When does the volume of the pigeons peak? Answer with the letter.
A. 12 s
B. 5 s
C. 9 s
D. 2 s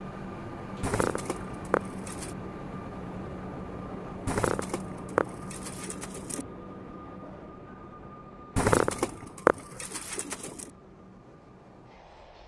C.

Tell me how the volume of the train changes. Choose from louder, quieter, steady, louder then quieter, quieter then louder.
quieter.